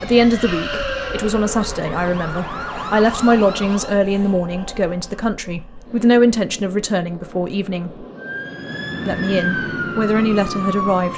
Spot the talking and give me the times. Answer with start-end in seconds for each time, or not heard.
0.0-8.1, 9.1-11.1.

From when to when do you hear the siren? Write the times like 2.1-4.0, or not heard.
0.0-4.0, 8.2-11.1.